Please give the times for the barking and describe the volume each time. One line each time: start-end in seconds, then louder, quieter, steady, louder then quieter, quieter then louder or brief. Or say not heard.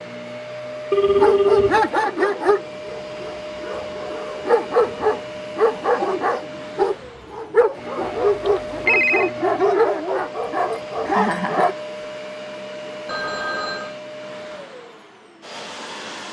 1.1-11.8 steady.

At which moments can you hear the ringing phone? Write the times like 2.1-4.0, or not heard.
0.9-1.9, 8.0-9.3, 13.1-13.9.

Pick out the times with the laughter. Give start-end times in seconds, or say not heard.
11.1-11.8.